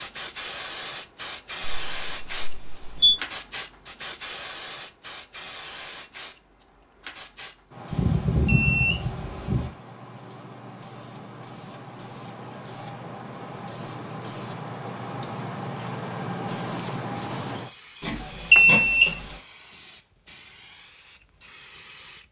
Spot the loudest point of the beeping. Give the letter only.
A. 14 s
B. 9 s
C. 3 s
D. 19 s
D.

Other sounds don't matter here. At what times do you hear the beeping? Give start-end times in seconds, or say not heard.
1.6-3.1, 7.9-9.7, 18.0-19.2.